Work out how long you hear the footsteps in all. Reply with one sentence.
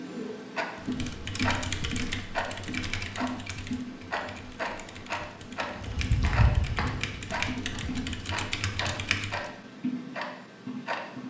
The footsteps can be heard for 2 seconds in total.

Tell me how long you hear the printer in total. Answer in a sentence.
The printer can't be heard in this clip.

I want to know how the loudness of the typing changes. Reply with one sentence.
The volume of the typing goes down, then up.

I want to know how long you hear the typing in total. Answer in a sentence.
You can hear the typing for 9 seconds altogether.